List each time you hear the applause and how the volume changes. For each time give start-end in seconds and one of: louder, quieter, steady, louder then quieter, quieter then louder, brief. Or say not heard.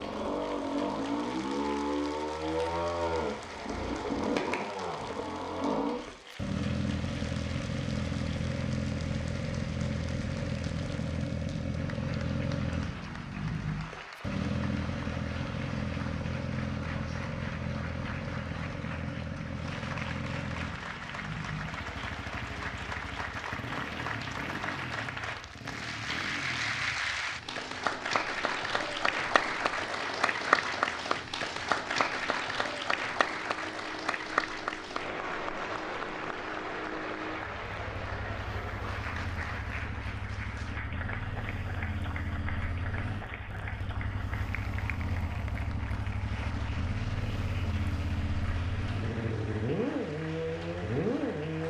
0.0-51.6 louder then quieter.